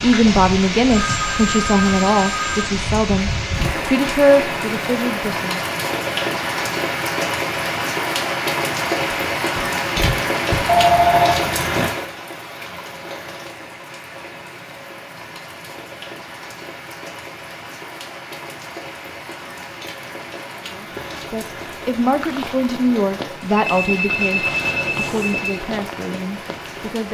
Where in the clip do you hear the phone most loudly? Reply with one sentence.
The loudest moment of the phone is at 11 seconds.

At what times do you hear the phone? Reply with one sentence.
You can hear the phone from 0.9 to 2.6 s, from 10.7 to 11.9 s and from 23.6 to 25.6 s.